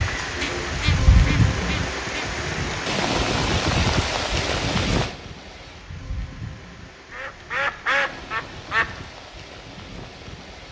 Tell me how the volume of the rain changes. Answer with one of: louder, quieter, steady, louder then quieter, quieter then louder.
quieter.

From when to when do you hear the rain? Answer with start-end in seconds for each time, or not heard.
0.0-10.6.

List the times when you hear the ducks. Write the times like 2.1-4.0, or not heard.
0.4-2.2, 7.1-8.9.